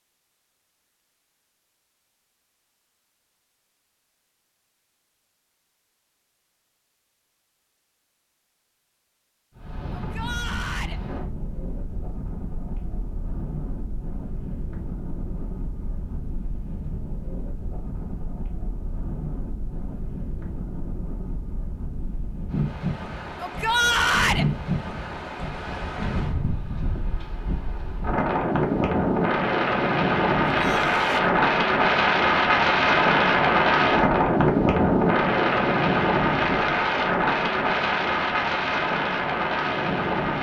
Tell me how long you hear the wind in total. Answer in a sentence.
You can hear the wind for 31 seconds altogether.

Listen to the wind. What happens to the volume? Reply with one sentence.
The loudness of the wind goes up.